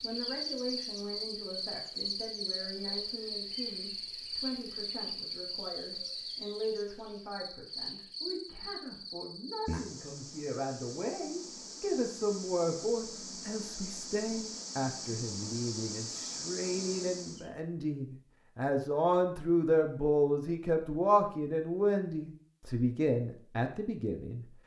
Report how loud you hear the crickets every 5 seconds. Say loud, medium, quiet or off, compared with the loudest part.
loud, loud, medium, loud, off.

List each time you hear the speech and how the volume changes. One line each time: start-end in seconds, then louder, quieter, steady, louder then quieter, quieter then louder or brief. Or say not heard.
0.0-24.4 louder.